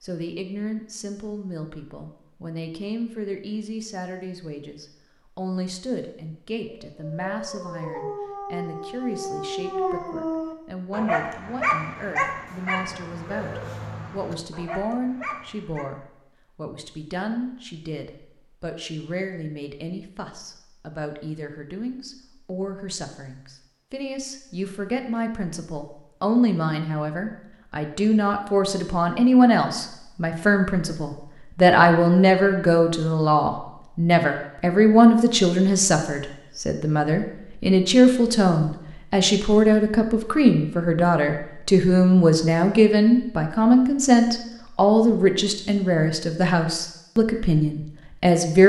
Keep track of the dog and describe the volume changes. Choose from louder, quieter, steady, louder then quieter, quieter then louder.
louder then quieter.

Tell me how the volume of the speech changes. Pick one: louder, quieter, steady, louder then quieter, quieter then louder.
louder.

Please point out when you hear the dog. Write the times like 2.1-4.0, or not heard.
6.7-15.9.